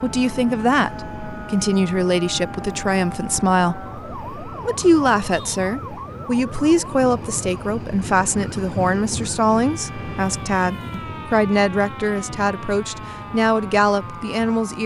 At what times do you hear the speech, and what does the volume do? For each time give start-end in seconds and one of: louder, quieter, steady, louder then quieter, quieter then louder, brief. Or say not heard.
0.0-14.8 steady.